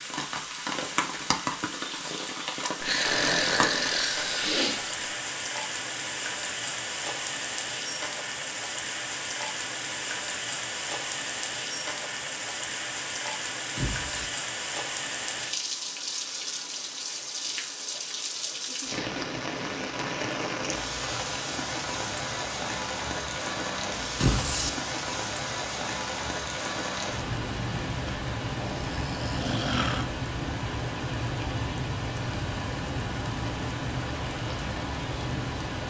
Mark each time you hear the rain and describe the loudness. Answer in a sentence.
The rain can be heard from 0.0 to 35.8 s, at a steady volume.